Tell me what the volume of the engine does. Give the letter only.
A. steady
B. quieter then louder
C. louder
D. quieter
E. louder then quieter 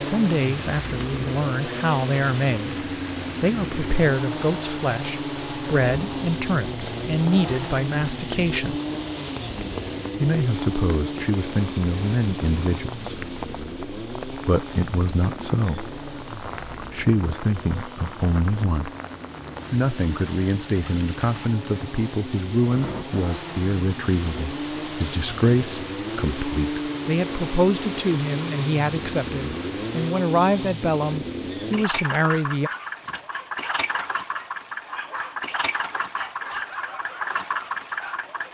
B.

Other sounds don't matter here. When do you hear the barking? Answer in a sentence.
The barking can be heard from 32.1 to 38.3 s.